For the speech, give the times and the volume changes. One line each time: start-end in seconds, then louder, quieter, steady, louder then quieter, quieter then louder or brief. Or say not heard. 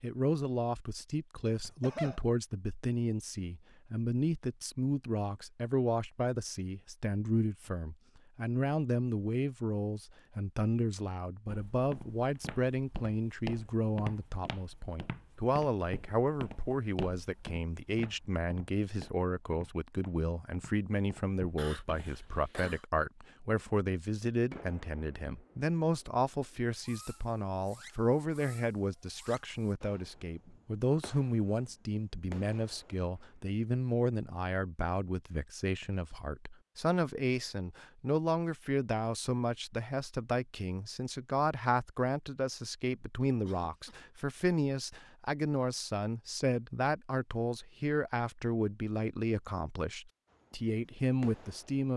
0.0-51.9 steady.